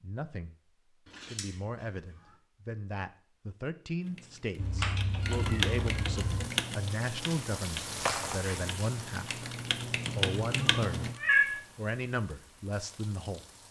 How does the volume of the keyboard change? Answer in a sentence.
The volume of the keyboard goes down, then up.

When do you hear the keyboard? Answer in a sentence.
You can hear the keyboard from 4.0 to 11.2 s.